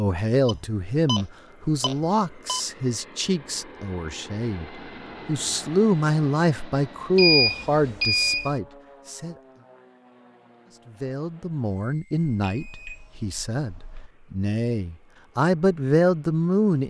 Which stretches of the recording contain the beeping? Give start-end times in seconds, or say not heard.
0.5-2.6, 7.2-8.5, 12.2-14.1.